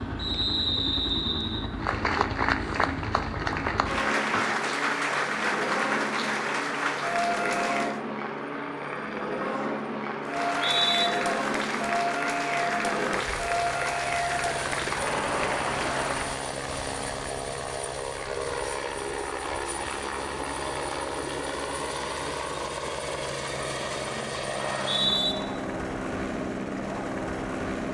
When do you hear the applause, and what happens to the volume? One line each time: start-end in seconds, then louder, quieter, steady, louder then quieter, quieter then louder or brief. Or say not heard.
1.8-8.0 steady
10.2-16.4 steady.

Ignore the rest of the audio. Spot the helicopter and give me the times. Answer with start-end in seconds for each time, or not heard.
0.0-27.8.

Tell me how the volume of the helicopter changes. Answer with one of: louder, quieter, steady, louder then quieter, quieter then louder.
steady.